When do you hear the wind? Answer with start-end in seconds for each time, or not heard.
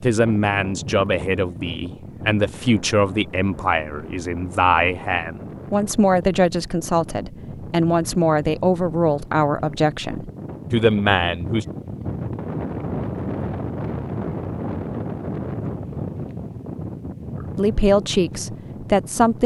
0.0-19.4.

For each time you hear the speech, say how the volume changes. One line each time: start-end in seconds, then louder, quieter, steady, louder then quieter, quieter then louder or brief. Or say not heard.
0.0-11.7 steady
17.4-19.4 brief.